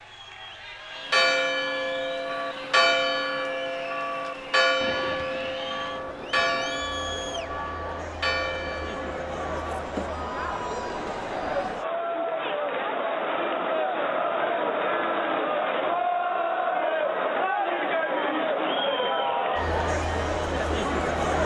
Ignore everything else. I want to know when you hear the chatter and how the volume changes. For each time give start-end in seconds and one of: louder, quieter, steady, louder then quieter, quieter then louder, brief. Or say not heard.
0.0-21.4 louder.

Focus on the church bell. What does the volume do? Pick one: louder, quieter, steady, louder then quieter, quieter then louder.
quieter.